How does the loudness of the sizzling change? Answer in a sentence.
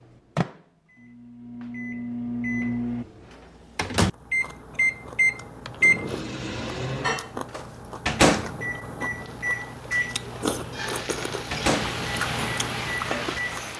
The loudness of the sizzling goes up.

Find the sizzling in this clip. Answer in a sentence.
You can hear the sizzling from 9.2 to 13.7 s.